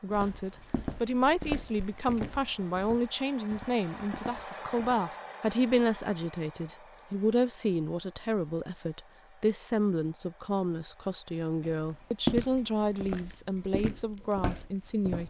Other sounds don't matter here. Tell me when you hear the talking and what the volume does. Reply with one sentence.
You can hear the talking from 0.0 to 15.2 s, at a steady volume.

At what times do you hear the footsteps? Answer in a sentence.
The footsteps can be heard from 0.1 to 5.0 s and from 11.6 to 15.2 s.